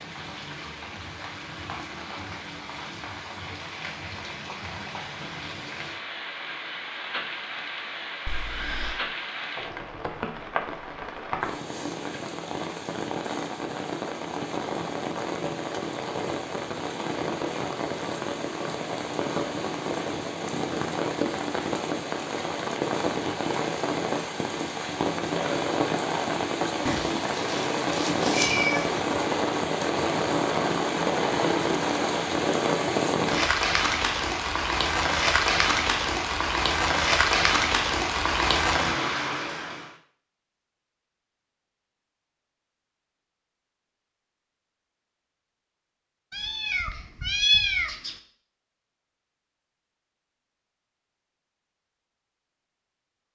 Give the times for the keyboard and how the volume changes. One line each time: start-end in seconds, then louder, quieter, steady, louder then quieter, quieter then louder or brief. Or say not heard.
not heard.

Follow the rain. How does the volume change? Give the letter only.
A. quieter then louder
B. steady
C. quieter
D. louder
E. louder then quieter
D.